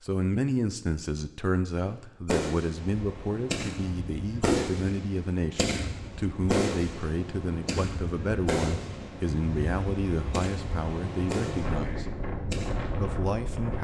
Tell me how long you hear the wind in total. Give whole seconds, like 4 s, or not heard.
11 s.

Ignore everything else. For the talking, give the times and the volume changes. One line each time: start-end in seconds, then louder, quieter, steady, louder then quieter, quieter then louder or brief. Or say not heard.
0.0-12.1 steady
12.9-13.7 brief.